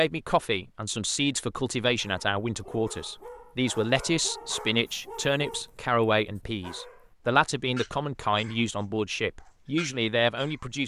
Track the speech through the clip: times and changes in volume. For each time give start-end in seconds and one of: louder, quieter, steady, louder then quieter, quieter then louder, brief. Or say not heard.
0.0-10.8 steady.